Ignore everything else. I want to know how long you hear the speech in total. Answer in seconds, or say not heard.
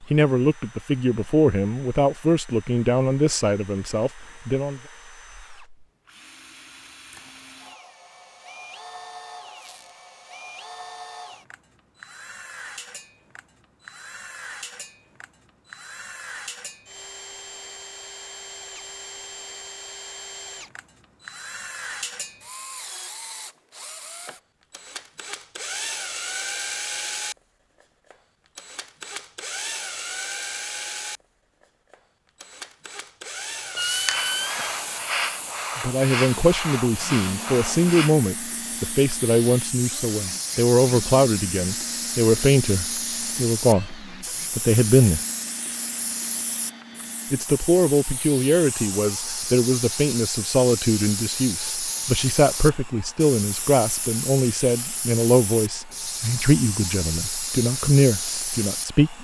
26 s.